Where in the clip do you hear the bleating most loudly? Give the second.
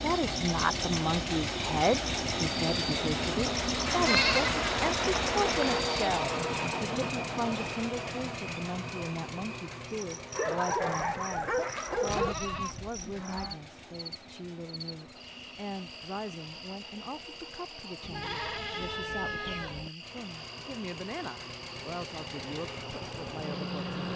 4 s.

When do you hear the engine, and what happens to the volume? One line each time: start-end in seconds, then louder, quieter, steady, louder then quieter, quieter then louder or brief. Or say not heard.
0.0-18.1 quieter
19.9-24.1 louder.